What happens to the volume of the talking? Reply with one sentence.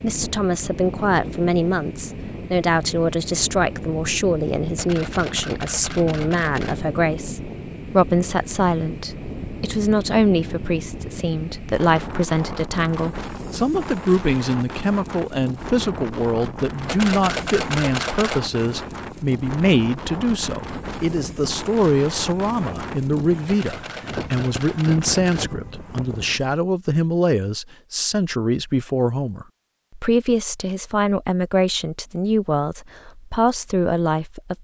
The volume of the talking stays about the same.